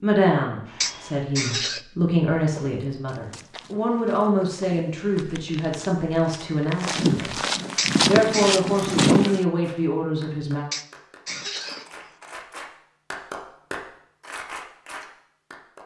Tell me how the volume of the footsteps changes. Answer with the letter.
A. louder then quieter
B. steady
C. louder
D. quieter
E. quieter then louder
C.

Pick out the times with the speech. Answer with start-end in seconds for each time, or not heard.
0.0-7.3, 8.1-10.7.